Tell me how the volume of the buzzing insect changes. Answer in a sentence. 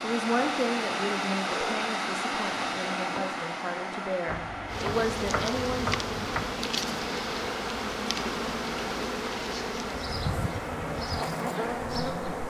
The loudness of the buzzing insect stays about the same.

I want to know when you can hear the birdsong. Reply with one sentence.
You can't hear the birdsong here.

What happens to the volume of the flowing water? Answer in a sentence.
The volume of the flowing water goes down.